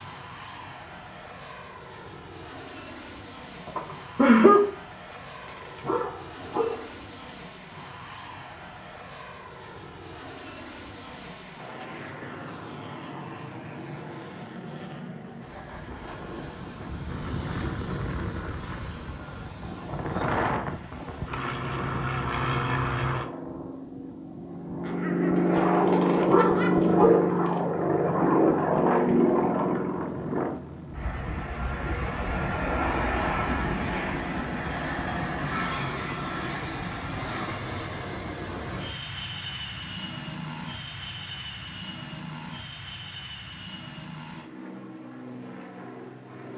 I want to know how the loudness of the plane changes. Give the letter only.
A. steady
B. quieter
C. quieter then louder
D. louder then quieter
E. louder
D.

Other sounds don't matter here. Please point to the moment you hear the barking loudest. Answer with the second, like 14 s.
27 s.